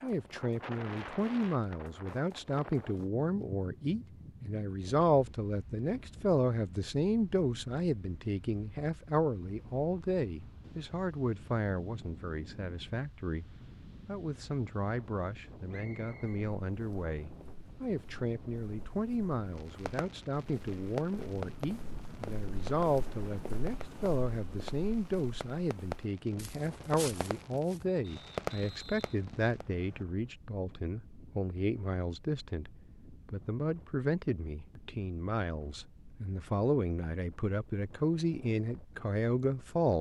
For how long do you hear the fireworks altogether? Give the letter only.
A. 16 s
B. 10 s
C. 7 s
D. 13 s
B.